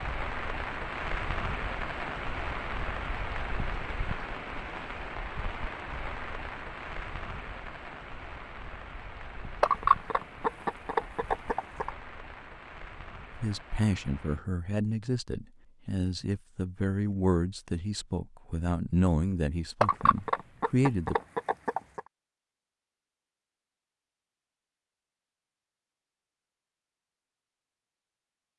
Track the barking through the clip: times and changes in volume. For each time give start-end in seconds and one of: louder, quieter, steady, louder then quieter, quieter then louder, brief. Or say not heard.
not heard.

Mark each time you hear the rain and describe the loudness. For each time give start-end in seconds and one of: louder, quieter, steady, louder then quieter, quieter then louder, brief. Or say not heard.
0.0-14.4 quieter.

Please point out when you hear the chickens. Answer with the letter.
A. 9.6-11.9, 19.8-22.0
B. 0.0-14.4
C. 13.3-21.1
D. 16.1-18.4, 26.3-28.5
A.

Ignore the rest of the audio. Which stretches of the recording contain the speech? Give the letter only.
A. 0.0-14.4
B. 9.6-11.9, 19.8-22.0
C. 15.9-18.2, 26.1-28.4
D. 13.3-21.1
D.